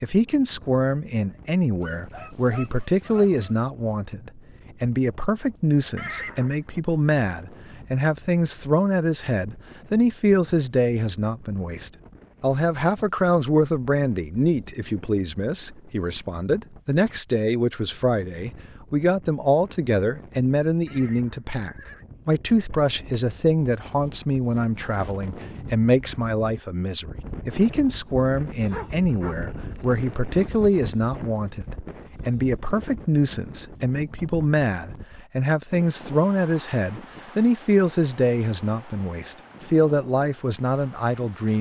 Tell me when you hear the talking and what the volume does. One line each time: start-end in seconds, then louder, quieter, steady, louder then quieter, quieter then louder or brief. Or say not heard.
0.0-41.5 steady.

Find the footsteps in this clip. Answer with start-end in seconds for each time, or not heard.
not heard.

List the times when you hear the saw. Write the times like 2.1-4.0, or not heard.
not heard.